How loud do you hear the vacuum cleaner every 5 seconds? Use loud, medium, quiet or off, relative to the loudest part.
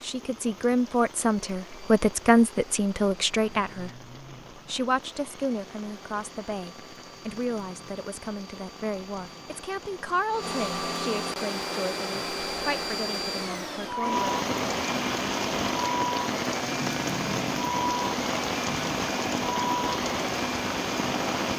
quiet, quiet, loud, loud, loud.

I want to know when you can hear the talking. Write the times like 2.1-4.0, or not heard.
0.0-14.3.